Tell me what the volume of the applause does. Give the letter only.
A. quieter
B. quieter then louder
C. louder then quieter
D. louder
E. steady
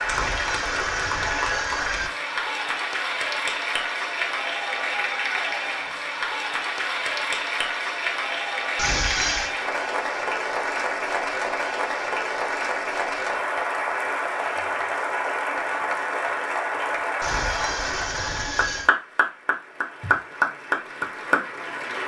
E.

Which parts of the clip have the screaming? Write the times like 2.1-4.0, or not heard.
0.1-2.1, 8.8-9.6, 17.2-18.9.